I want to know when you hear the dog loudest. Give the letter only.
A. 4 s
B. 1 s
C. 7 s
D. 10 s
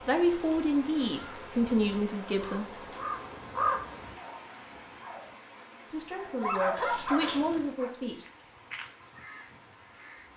C.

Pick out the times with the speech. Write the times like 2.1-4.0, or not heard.
0.1-2.8, 5.9-8.2.